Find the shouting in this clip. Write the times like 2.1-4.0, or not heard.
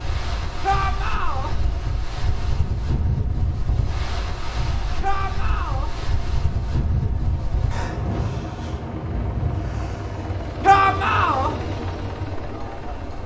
0.6-1.5, 5.0-5.9, 10.6-11.5.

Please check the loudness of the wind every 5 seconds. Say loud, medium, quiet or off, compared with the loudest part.
loud, loud, medium.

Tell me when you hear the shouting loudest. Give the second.
11 s.